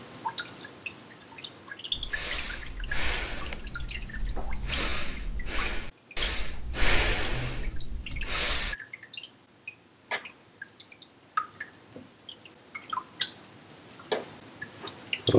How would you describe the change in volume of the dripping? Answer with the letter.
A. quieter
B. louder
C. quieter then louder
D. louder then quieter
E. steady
C.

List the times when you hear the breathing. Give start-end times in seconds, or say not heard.
1.9-8.8.